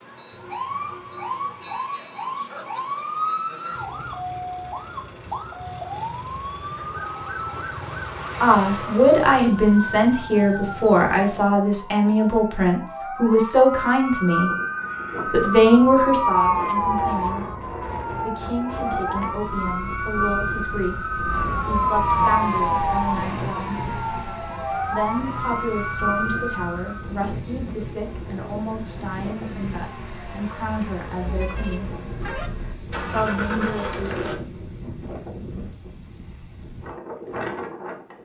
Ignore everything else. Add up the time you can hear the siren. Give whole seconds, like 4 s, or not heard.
27 s.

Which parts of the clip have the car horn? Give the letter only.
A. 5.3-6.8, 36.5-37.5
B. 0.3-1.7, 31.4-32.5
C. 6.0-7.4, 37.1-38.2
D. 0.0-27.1
B.